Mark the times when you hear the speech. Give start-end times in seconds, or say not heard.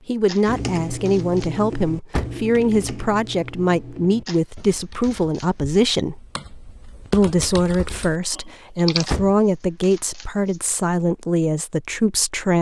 0.1-6.2, 7.1-12.5.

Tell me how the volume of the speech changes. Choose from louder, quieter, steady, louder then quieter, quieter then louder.
steady.